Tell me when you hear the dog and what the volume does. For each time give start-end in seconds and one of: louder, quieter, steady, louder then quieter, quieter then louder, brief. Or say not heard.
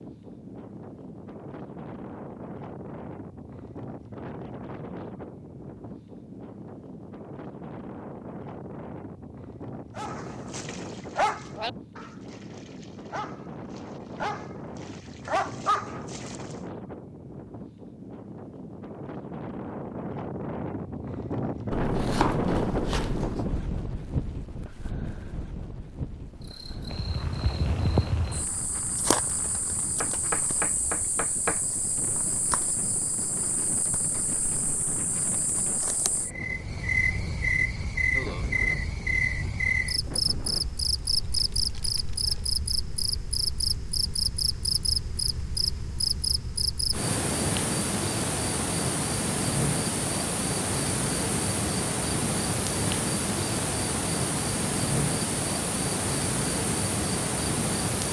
9.9-16.4 quieter then louder.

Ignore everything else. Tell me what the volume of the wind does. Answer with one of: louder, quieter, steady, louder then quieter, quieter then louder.
louder then quieter.